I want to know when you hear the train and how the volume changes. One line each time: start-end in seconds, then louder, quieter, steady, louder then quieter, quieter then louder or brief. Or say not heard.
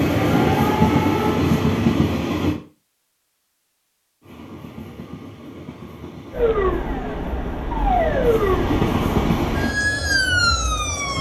0.0-2.6 brief
4.2-9.8 louder.